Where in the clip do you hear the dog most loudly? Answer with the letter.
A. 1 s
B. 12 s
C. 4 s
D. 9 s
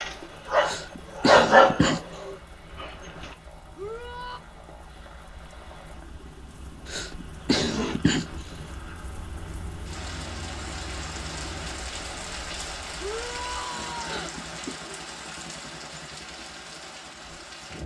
A.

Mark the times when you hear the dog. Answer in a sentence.
You can hear the dog from 0.0 to 3.4 s.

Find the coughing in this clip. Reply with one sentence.
The coughing can be heard from 0.6 to 2.0 s, from 6.8 to 8.7 s and from 14.0 to 14.8 s.